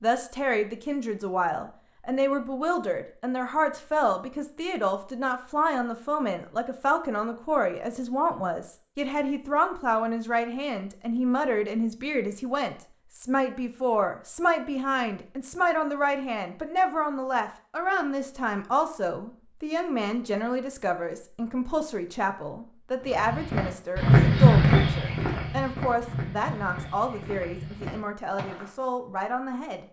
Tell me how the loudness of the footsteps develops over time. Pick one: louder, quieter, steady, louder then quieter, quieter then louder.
quieter.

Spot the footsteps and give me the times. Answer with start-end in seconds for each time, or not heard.
23.0-28.9.